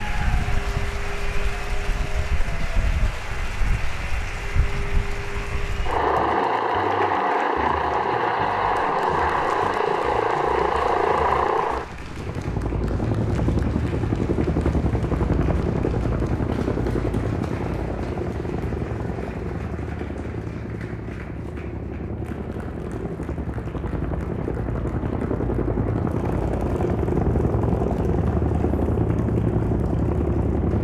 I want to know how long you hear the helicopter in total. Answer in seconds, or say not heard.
31 s.